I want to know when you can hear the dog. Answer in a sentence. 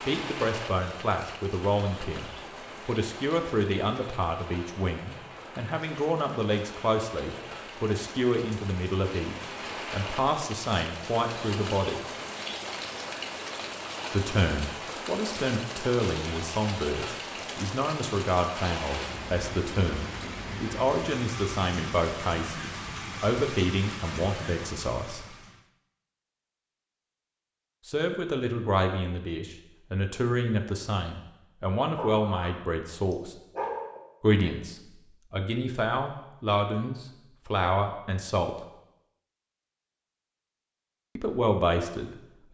You can hear the dog from 31.9 to 34.0 s.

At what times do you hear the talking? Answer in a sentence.
You can hear the talking from 0.1 to 12.1 s, from 14.1 to 25.4 s, from 27.9 to 33.4 s, from 34.2 to 38.5 s and from 41.1 to 42.4 s.